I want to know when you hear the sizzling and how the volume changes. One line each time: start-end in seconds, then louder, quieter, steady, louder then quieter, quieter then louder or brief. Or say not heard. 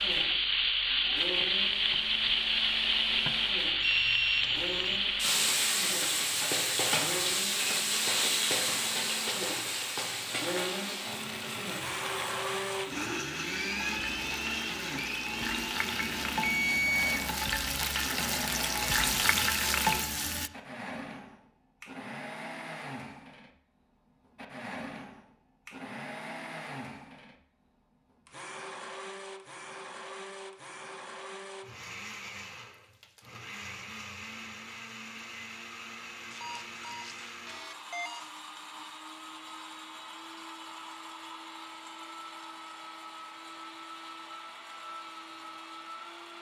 0.0-20.5 quieter then louder.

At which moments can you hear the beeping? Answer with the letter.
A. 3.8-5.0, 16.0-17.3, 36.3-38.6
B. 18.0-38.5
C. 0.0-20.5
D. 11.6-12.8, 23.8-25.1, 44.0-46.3
A.